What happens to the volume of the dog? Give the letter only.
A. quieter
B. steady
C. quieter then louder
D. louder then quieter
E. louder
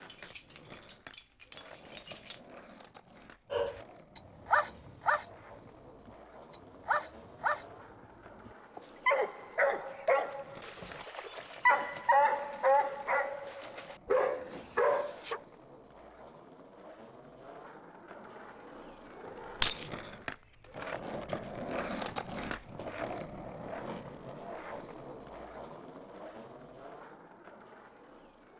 B.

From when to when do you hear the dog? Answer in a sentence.
You can hear the dog from 3.5 to 7.7 s and from 8.4 to 15.4 s.